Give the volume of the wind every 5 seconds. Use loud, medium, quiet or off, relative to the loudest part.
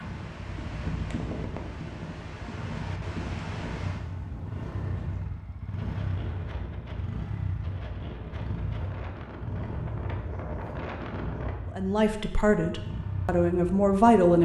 loud, medium, loud.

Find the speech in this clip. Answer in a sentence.
The speech can be heard from 11.8 to 14.3 s.